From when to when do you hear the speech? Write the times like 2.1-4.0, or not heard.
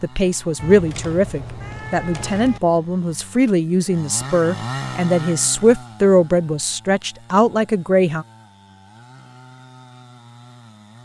0.0-8.2.